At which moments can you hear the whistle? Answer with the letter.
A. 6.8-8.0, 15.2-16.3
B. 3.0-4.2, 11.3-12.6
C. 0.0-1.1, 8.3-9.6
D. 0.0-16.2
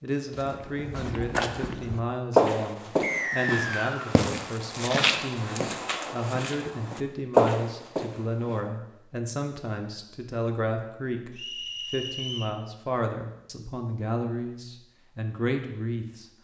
B.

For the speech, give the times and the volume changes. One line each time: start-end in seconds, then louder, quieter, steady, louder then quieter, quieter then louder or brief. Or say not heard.
0.0-16.2 steady.